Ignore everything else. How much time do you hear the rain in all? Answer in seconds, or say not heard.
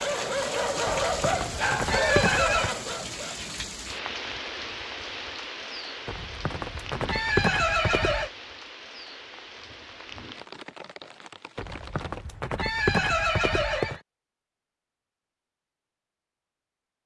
12 s.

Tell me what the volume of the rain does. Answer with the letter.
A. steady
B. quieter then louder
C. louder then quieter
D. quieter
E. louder
D.